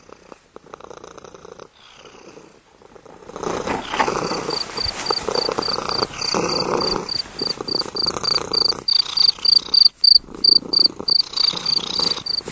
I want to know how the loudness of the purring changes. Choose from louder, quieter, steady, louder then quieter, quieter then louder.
louder then quieter.